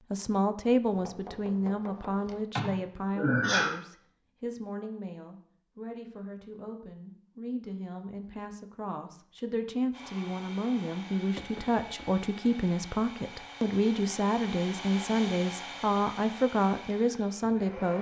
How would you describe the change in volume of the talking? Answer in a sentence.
The loudness of the talking goes down, then up.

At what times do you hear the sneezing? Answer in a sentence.
The sneezing can be heard from 2.5 to 3.7 s.